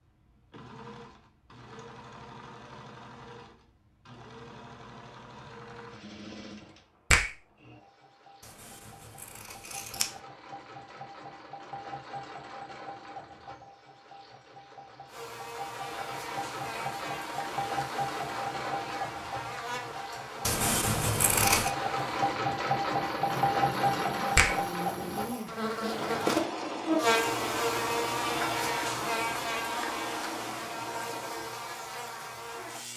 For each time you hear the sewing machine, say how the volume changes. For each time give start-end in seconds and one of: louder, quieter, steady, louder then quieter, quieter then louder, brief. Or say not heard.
0.0-32.9 louder then quieter.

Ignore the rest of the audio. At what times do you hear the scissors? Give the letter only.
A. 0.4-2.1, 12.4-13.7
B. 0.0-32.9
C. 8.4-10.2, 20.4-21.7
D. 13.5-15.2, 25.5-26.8
C.